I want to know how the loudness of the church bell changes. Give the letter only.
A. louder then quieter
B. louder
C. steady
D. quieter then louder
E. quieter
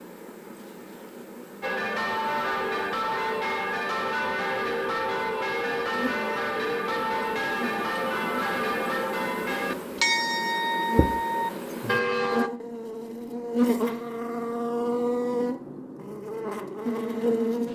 C.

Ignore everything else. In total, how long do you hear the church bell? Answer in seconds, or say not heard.
11 s.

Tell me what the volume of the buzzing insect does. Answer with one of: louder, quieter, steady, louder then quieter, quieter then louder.
louder.